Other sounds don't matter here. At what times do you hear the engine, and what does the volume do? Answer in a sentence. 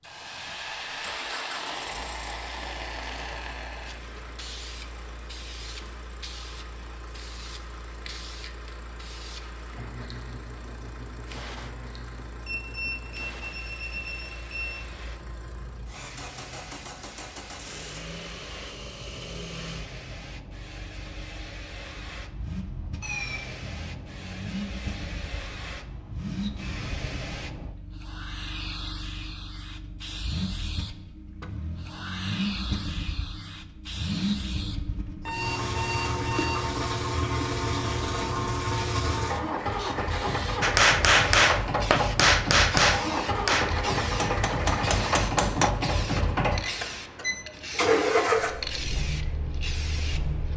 You can hear the engine from 0.0 to 50.5 s, getting louder.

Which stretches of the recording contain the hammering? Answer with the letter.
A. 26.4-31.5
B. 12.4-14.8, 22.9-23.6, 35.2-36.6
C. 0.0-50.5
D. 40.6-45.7
D.